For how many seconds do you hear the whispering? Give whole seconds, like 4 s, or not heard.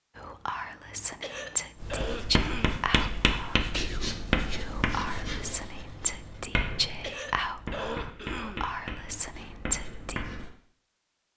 10 s.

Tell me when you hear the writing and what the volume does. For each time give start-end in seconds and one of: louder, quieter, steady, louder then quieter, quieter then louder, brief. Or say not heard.
1.8-10.5 quieter.